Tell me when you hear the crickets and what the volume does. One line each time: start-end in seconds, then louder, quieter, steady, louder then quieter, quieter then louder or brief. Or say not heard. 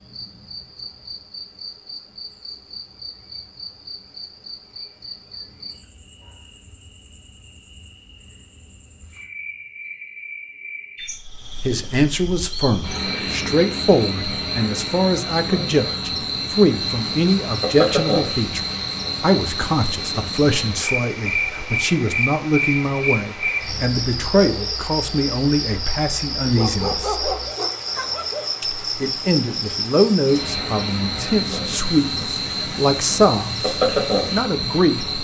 0.0-35.1 louder.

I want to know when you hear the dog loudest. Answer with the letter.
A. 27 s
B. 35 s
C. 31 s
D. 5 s
A.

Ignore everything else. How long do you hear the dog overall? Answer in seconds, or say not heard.
2 s.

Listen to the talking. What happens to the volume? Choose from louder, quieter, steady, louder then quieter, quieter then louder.
steady.